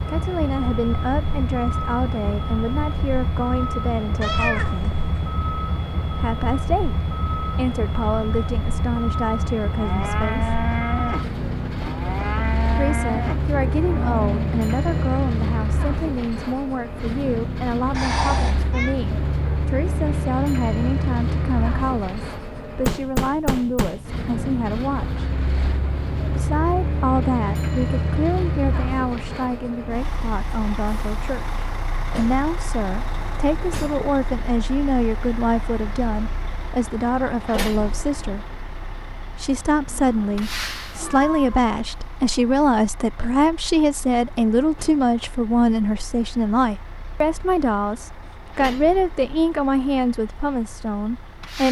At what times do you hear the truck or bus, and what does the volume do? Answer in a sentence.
You can hear the truck or bus from 0.0 to 51.6 s, getting quieter.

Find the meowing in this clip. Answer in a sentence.
The meowing can be heard from 4.2 to 5.2 s, from 17.9 to 18.9 s and from 39.9 to 41.6 s.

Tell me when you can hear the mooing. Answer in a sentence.
You can hear the mooing from 9.7 to 15.1 s.